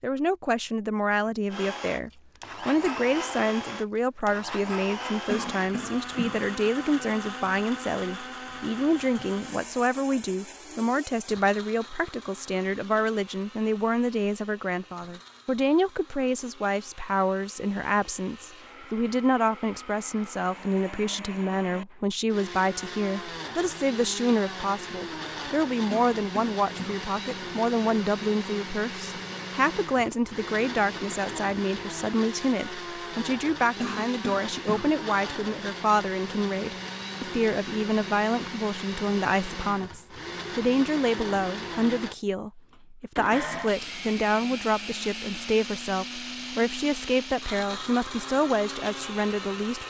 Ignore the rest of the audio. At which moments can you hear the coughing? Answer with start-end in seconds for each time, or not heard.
5.2-6.5, 25.9-27.1, 33.8-35.0.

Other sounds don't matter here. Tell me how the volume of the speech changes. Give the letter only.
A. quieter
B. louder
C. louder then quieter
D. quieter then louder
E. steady
E.